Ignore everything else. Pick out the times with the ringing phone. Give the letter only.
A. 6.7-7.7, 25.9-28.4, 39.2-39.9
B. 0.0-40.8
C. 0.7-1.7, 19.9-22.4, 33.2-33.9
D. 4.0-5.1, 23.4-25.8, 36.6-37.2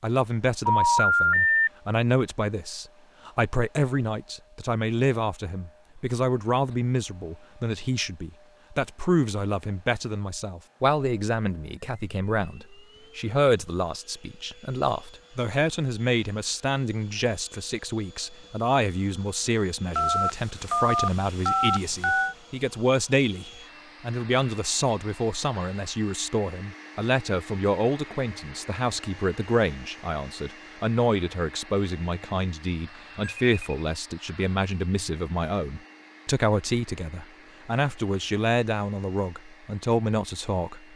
C.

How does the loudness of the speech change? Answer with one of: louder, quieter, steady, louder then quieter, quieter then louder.
steady.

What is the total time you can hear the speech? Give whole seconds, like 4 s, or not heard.
41 s.